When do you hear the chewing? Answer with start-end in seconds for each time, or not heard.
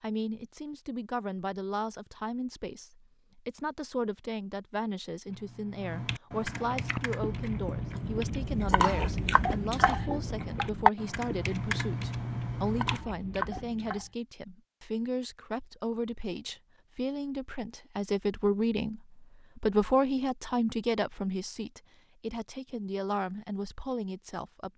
6.5-14.1.